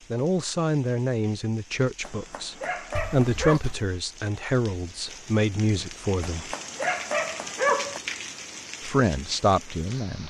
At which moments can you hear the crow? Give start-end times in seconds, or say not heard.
not heard.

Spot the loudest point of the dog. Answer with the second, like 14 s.
8 s.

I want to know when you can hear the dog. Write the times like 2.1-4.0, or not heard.
2.0-3.6, 6.2-8.0.